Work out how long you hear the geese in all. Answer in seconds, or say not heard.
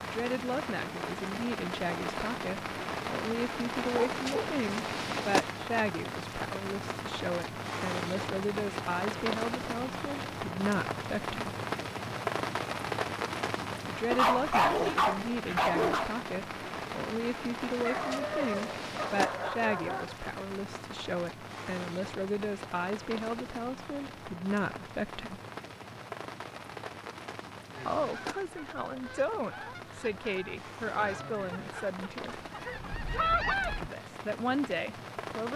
6 s.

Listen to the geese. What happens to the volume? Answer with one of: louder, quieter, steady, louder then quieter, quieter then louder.
louder.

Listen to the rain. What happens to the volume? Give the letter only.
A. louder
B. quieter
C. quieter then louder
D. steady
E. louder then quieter
B.